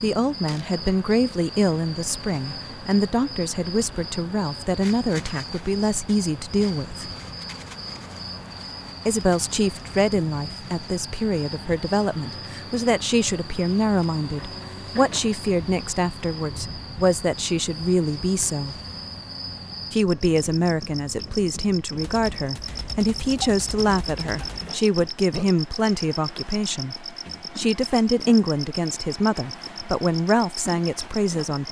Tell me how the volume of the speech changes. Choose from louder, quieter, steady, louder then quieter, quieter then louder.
steady.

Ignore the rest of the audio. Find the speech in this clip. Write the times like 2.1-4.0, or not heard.
0.0-7.1, 9.1-18.8, 19.9-31.6.